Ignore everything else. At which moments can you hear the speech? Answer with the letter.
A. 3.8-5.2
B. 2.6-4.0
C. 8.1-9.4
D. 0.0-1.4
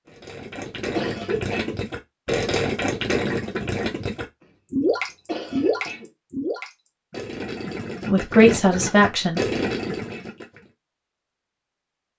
C.